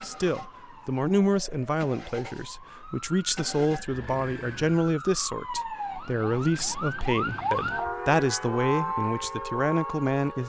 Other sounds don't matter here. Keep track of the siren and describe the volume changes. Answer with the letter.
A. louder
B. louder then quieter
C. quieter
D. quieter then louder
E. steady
A.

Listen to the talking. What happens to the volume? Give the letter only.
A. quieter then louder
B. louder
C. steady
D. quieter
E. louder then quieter
C.